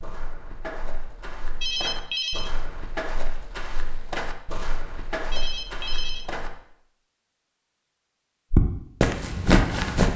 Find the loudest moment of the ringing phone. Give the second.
2 s.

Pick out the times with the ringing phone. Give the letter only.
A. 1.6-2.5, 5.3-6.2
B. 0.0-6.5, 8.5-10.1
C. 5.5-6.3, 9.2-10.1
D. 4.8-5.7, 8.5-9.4
A.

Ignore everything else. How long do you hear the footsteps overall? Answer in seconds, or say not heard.
8 s.